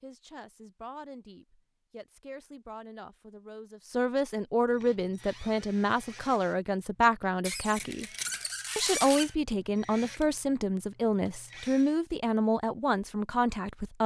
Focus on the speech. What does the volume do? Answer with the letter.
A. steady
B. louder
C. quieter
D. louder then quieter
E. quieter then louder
B.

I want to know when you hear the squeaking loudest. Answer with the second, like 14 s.
9 s.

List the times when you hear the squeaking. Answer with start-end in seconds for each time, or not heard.
7.4-9.3.